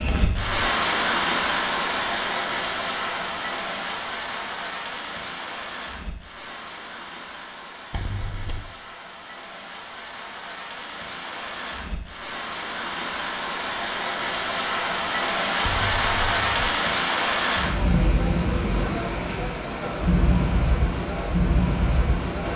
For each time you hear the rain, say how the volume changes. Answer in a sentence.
You can hear the rain from 0.0 to 22.5 s, getting quieter then louder.